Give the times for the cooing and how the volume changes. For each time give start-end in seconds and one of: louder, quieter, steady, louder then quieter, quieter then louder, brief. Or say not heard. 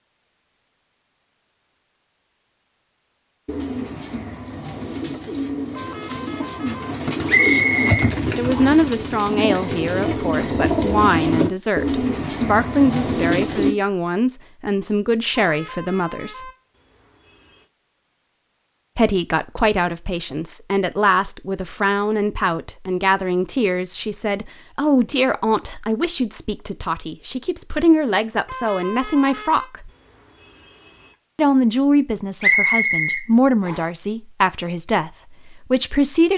3.5-13.8 louder.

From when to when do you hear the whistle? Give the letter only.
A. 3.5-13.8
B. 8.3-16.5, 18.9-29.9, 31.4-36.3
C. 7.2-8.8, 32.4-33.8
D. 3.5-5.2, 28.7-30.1
C.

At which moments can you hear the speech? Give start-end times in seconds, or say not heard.
8.3-16.5, 18.9-29.9, 31.4-36.3.